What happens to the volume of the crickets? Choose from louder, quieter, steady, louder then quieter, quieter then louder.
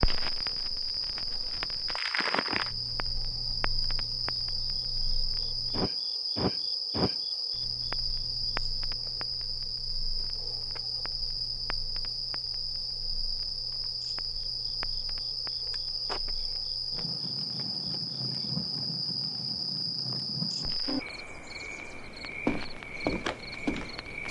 steady.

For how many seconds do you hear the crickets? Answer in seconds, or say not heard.
24 s.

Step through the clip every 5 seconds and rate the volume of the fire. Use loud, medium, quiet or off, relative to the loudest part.
loud, loud, quiet, medium, medium.